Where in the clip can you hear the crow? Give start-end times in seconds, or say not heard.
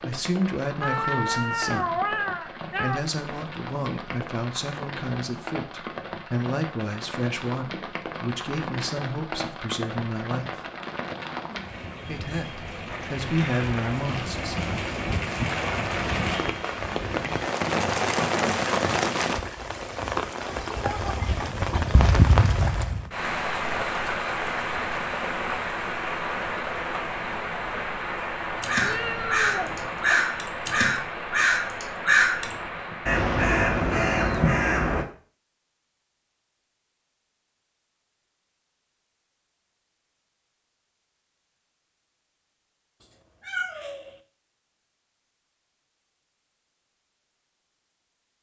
28.6-35.0.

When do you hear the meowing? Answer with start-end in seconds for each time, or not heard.
0.8-3.0, 28.8-30.1, 43.0-44.1.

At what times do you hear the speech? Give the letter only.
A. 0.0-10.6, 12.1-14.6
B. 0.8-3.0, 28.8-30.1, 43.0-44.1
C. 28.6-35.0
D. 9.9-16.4
A.